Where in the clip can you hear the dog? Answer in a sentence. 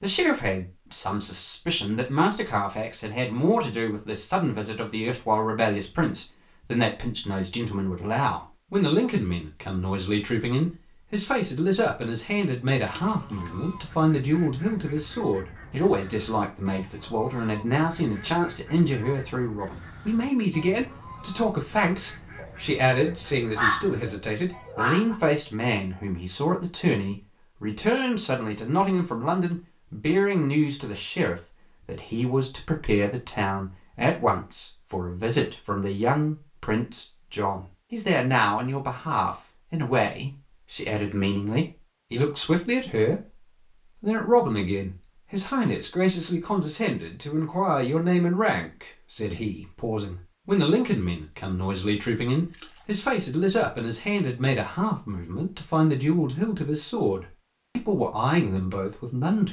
The dog can be heard from 22.4 to 25.1 s.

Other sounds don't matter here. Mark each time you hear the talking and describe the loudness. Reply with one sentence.
You can hear the talking from 0.0 to 59.4 s, at a steady volume.